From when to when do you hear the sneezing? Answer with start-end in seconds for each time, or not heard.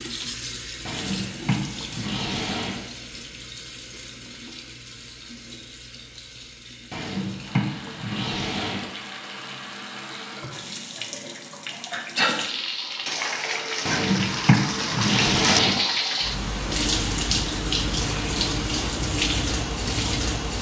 11.9-12.4.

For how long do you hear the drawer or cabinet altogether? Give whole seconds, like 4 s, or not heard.
6 s.